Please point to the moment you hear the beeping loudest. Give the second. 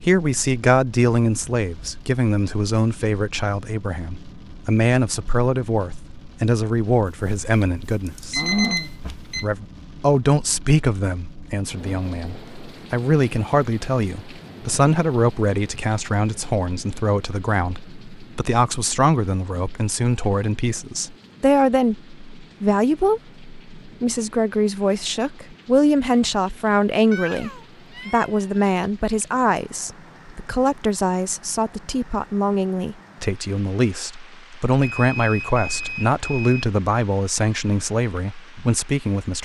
9 s.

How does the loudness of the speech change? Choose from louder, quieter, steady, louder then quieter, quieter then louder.
steady.